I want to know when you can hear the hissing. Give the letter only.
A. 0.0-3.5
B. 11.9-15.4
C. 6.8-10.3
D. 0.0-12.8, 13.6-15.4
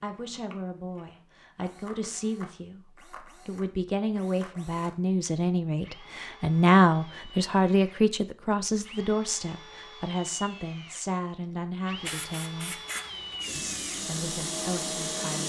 B.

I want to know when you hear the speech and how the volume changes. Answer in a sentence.
The speech can be heard from 0.0 to 12.8 s, getting louder then quieter; and briefly from 13.6 to 15.4 s.